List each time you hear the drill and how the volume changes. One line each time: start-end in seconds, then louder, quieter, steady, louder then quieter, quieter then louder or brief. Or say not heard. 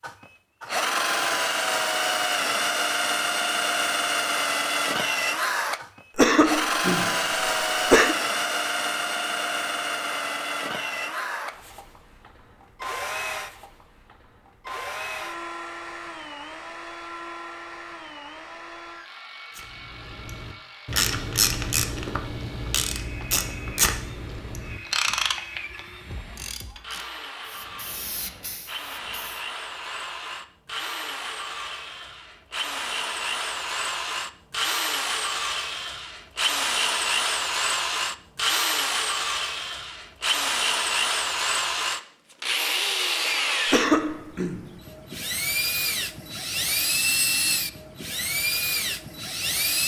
0.0-49.8 quieter then louder.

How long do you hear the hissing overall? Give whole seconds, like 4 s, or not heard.
2 s.